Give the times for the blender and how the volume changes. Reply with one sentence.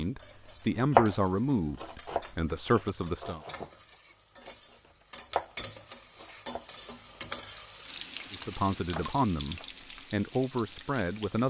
You can't hear the blender here.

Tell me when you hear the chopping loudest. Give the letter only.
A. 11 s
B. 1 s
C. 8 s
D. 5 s
B.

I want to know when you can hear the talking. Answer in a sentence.
You can hear the talking from 0.0 to 3.4 s and from 8.3 to 11.4 s.